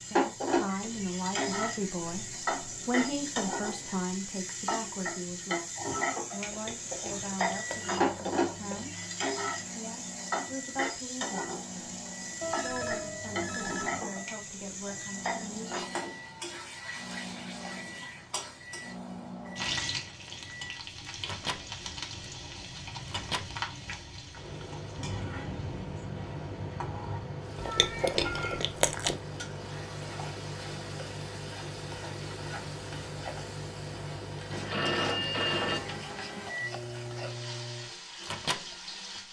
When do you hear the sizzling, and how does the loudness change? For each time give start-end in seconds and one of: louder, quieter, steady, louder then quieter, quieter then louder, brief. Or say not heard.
0.0-39.2 quieter.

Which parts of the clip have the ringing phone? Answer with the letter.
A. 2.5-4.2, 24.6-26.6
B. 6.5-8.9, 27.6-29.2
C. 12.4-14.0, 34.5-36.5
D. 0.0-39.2
C.